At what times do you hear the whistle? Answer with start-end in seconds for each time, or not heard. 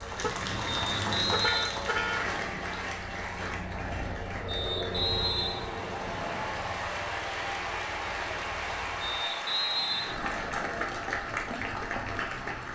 0.7-2.6, 4.5-6.5, 9.0-10.9.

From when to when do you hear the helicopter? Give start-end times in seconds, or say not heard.
0.0-9.2.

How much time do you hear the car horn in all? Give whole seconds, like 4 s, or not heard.
2 s.